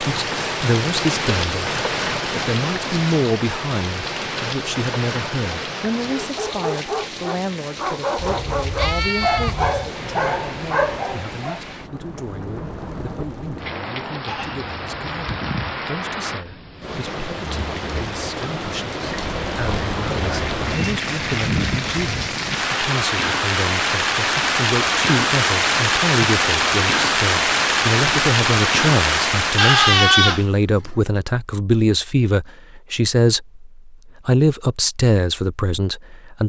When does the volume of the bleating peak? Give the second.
30 s.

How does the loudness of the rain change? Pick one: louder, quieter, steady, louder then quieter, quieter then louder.
quieter then louder.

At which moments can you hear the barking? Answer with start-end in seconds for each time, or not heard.
6.0-11.6.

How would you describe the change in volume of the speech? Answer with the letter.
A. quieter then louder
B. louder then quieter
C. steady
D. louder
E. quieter
A.